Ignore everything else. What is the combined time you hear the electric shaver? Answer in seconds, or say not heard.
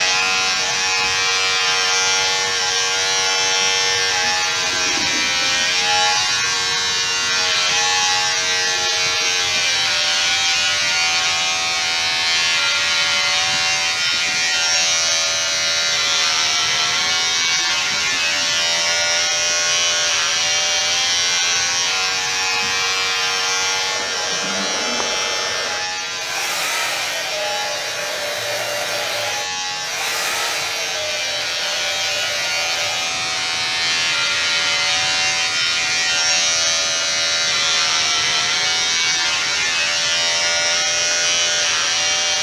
42 s.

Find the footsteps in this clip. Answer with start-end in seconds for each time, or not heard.
not heard.